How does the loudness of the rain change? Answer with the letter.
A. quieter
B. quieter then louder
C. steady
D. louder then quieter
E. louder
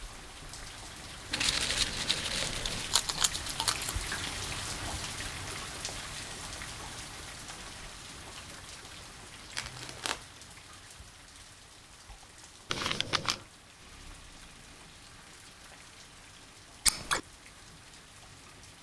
A.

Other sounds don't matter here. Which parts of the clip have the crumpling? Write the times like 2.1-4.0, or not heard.
1.3-3.0, 9.6-10.2, 12.7-13.4.